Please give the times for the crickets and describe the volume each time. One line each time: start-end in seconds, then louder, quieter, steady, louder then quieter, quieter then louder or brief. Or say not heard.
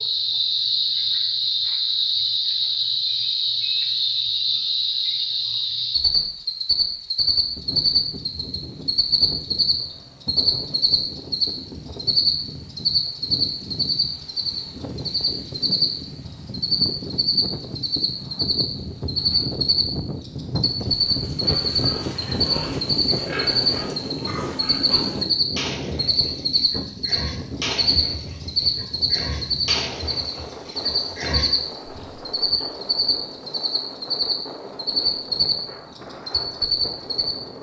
0.0-37.4 steady.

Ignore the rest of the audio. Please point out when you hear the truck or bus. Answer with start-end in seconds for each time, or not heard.
not heard.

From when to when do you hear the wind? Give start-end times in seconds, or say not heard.
7.4-37.5.